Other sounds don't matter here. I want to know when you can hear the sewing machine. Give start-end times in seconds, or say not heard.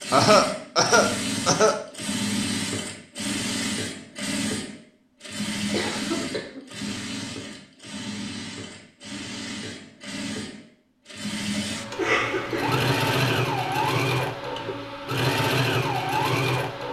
0.0-16.8.